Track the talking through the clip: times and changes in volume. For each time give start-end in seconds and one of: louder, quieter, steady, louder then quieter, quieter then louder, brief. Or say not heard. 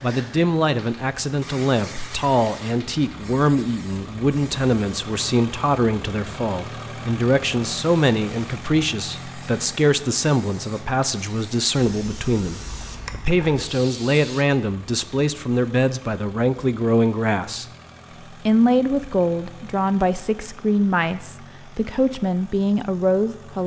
0.0-17.6 steady
18.3-23.6 steady.